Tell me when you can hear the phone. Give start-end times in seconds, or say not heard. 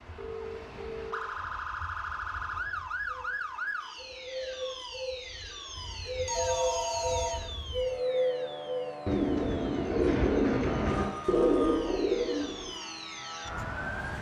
0.1-1.3, 6.0-7.8, 10.8-11.8.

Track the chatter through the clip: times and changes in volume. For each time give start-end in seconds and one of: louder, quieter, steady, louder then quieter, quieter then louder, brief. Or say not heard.
not heard.